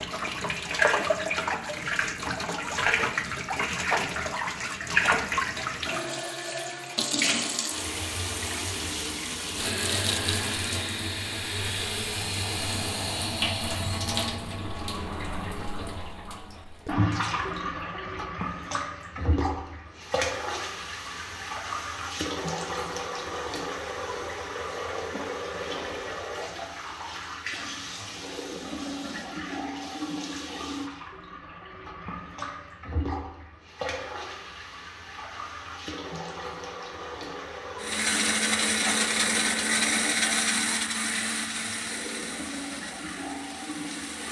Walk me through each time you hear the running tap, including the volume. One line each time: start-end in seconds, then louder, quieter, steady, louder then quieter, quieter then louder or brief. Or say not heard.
0.0-44.2 quieter.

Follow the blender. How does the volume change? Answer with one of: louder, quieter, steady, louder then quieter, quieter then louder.
quieter.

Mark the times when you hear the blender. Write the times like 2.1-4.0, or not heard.
37.8-44.2.